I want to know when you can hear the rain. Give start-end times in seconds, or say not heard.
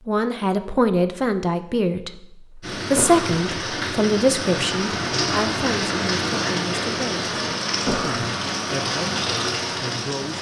2.6-10.3.